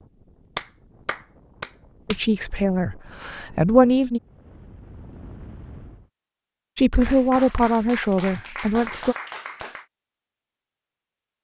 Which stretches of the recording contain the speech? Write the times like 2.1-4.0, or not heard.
2.0-4.2, 6.8-9.2.